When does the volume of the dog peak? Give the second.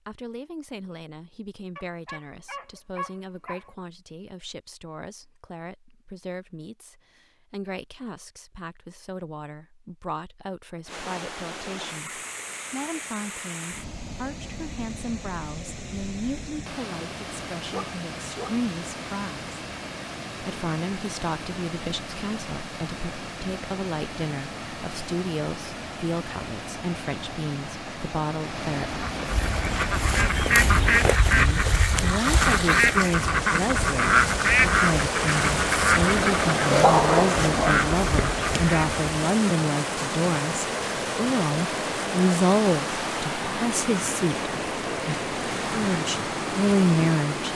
37 s.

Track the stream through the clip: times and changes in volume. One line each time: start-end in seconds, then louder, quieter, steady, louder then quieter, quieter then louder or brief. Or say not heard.
10.8-47.5 louder.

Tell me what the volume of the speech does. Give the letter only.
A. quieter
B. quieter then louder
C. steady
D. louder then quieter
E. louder
E.